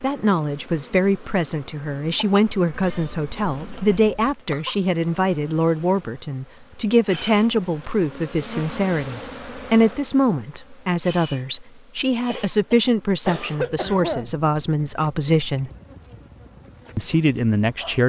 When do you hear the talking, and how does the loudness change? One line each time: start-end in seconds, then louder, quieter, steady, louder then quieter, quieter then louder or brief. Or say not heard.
0.0-15.7 steady
16.9-18.0 brief.